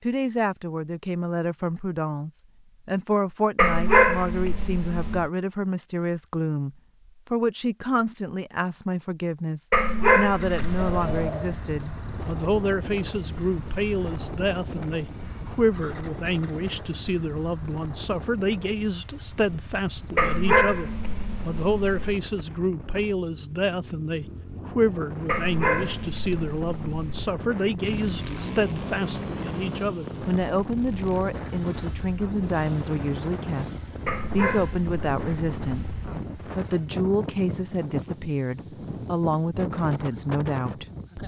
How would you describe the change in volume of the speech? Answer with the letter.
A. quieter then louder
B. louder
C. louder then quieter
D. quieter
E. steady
E.